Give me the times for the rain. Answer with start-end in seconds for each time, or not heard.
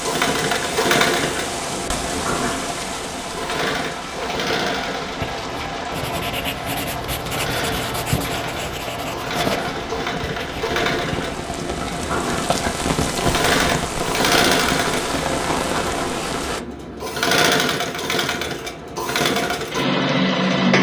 0.0-16.6.